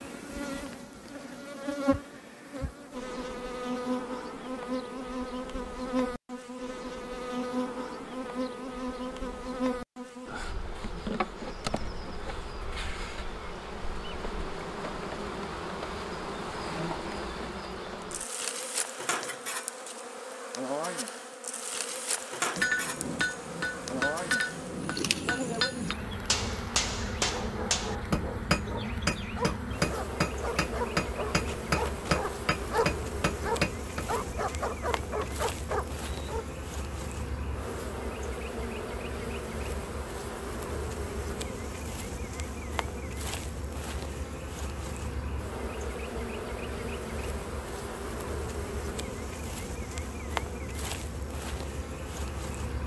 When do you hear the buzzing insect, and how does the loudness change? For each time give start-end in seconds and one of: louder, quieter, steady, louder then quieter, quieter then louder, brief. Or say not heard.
0.0-52.8 steady.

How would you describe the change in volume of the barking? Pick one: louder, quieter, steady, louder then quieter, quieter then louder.
louder.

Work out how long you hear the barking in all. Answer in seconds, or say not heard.
9 s.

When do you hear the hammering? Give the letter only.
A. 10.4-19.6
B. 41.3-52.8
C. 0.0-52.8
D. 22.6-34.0
D.